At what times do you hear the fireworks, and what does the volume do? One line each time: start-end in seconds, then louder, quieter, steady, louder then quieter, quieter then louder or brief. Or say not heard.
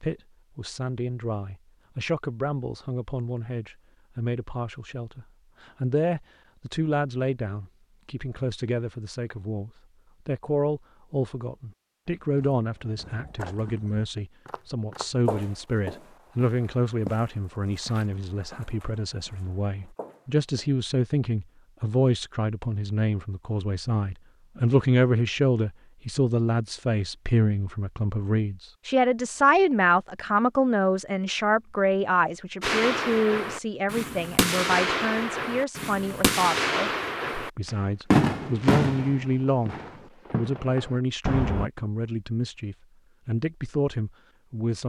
32.6-41.7 louder then quieter.